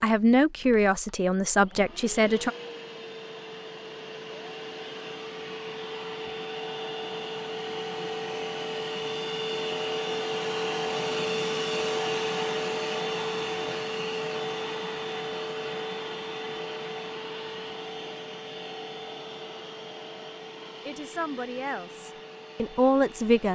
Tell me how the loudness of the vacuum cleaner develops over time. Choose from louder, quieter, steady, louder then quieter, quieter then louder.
louder then quieter.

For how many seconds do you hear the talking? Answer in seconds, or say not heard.
5 s.